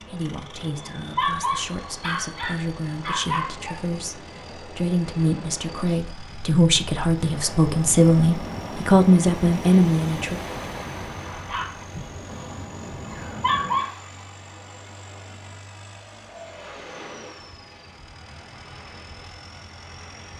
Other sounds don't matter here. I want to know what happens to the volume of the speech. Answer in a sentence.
The volume of the speech goes up.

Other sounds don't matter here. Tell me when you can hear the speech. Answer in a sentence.
You can hear the speech from 0.0 to 10.4 s.